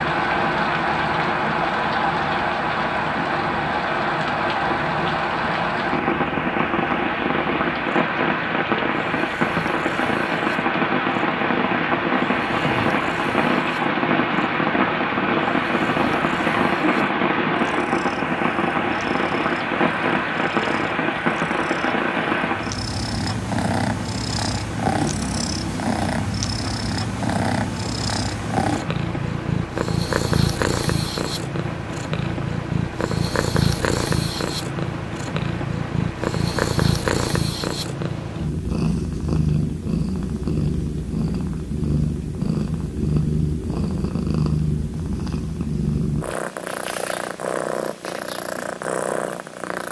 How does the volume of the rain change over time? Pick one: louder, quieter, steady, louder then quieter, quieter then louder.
quieter.